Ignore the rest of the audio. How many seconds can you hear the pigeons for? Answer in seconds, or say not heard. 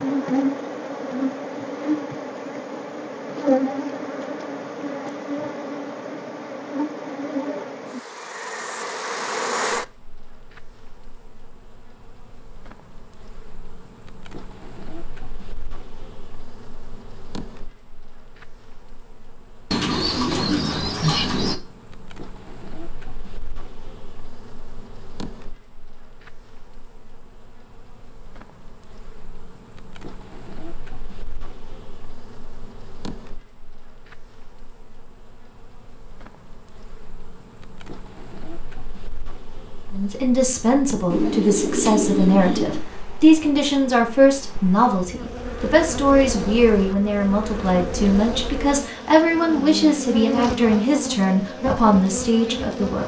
4 s.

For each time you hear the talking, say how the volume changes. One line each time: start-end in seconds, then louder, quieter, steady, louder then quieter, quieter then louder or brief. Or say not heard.
39.9-53.0 steady.